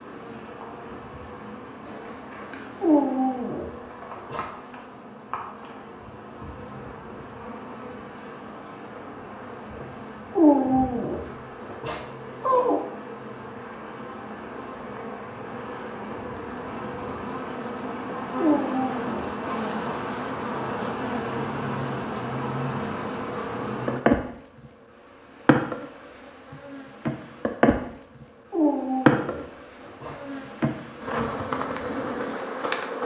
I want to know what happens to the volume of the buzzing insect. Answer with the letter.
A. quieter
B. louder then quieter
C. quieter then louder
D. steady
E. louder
E.